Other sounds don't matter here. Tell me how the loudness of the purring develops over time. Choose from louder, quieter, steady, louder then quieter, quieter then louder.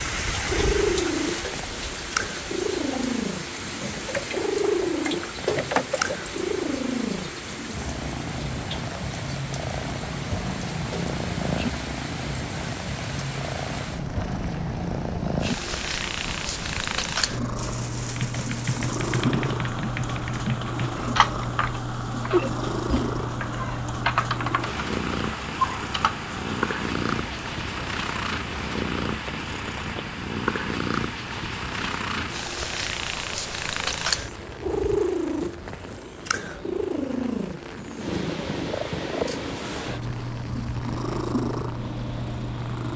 steady.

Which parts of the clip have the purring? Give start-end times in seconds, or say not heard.
0.1-42.9.